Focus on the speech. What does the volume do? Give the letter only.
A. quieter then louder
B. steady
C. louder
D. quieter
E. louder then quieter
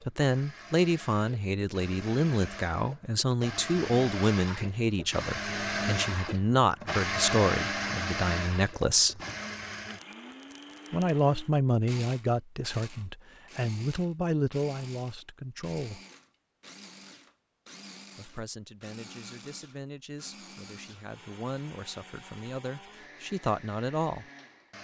D.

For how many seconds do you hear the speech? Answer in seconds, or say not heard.
20 s.